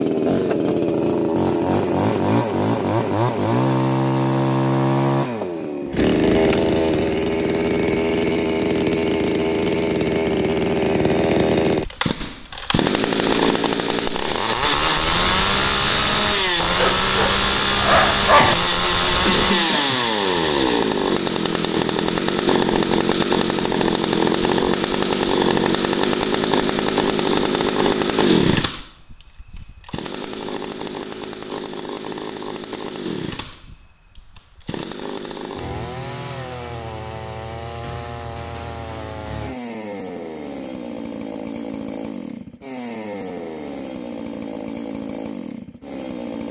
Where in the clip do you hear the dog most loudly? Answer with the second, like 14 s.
18 s.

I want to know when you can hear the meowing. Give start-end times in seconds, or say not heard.
not heard.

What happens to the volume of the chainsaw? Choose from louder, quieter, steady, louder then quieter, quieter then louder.
quieter.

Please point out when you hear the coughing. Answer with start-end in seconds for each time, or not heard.
19.2-20.1.